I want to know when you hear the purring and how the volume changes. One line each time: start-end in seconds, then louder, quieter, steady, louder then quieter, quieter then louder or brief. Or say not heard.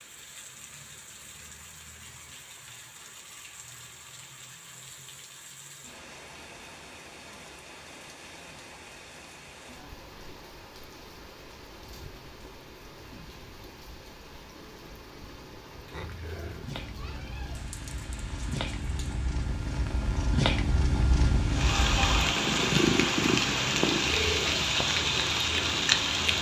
15.9-26.3 louder then quieter.